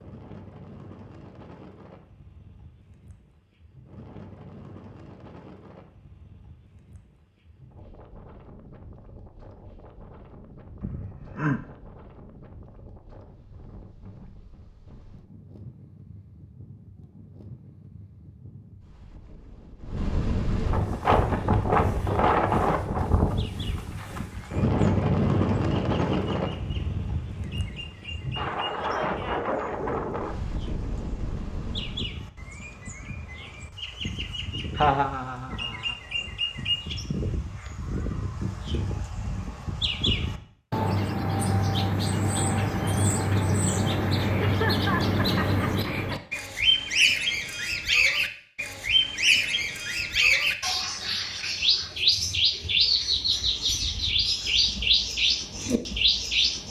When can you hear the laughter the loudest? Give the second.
35 s.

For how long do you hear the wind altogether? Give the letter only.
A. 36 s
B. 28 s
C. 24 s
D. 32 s
D.